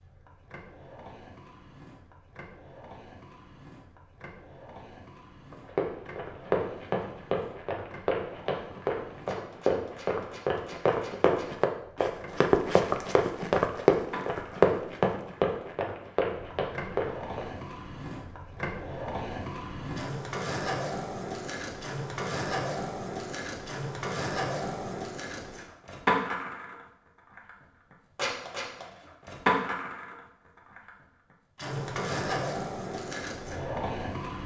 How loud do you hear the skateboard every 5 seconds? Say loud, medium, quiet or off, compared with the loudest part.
quiet, quiet, quiet, medium, loud, loud, loud.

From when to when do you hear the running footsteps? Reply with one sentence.
You can hear the running footsteps from 5.5 to 17.4 s.